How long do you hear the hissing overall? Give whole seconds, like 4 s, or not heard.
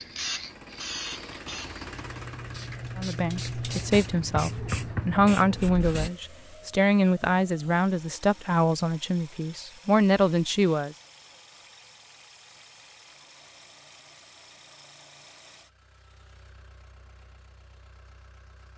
6 s.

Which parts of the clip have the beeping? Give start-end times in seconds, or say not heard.
not heard.